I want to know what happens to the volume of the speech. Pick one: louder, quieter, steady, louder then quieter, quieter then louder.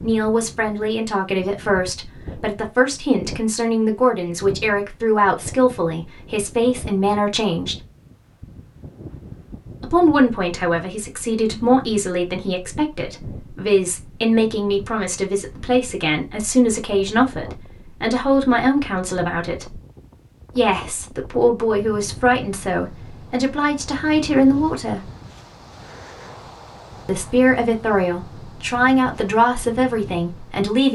steady.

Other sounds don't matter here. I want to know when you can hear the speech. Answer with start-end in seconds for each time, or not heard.
0.0-7.8, 9.8-19.8, 20.6-25.0, 27.1-30.8.